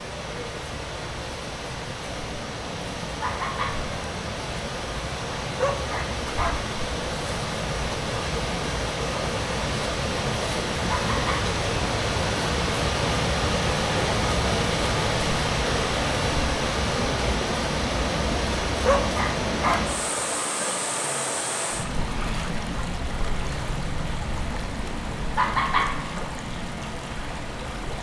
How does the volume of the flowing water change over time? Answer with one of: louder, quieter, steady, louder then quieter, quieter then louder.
louder then quieter.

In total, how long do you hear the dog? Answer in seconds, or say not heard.
3 s.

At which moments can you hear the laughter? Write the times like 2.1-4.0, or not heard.
3.2-3.8, 10.8-11.4, 25.4-25.9.